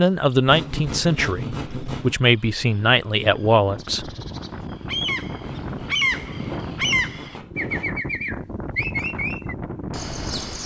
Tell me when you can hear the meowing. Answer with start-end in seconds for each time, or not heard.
not heard.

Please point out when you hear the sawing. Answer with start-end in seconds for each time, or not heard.
0.5-2.1, 5.4-7.9.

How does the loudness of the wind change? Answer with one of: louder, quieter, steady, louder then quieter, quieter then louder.
steady.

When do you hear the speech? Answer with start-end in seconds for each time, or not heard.
0.0-4.1.